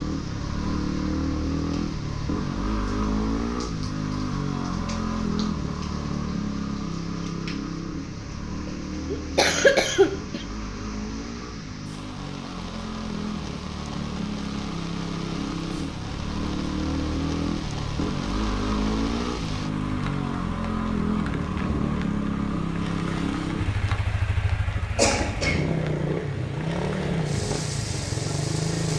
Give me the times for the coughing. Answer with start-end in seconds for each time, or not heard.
9.1-10.4, 24.9-25.7.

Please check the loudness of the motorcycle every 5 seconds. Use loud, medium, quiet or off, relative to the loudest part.
loud, loud, medium, loud, loud, loud.